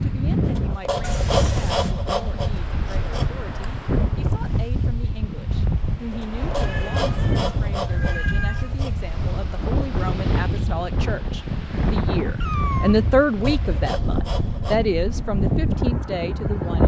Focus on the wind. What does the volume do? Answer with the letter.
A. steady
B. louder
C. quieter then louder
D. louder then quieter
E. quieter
A.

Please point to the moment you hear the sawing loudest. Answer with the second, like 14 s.
1 s.